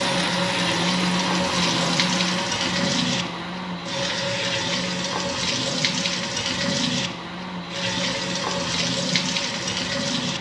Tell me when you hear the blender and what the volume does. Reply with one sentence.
You can hear the blender from 0.0 to 10.3 s, getting quieter.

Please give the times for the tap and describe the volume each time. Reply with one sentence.
You can hear the tap from 0.0 to 10.3 s, at a steady volume.